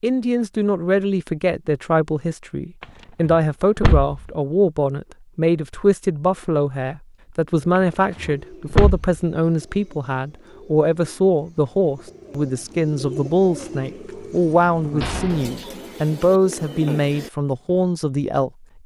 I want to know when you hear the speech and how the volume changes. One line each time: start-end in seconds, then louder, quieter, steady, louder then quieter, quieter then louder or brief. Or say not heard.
0.0-18.5 steady.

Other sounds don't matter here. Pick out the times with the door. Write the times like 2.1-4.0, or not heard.
2.8-4.2, 7.8-9.2, 15.0-15.6.